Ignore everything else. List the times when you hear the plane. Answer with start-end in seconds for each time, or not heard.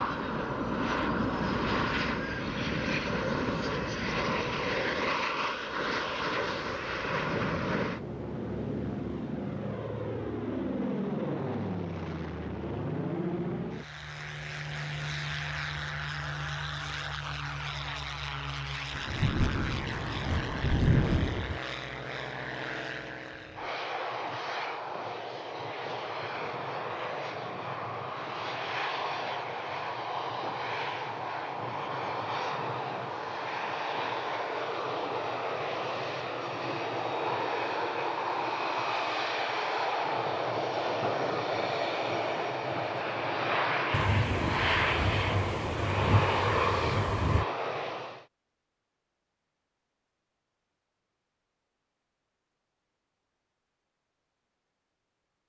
0.0-48.2.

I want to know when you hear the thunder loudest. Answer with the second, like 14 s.
21 s.